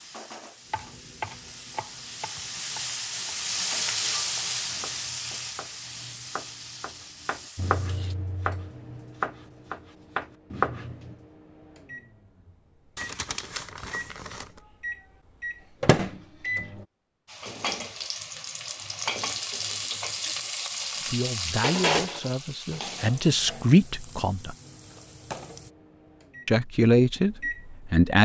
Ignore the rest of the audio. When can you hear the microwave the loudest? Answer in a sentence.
The volume of the microwave peaks at 16 seconds.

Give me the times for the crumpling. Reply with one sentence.
The crumpling can be heard from 12.9 to 14.6 s.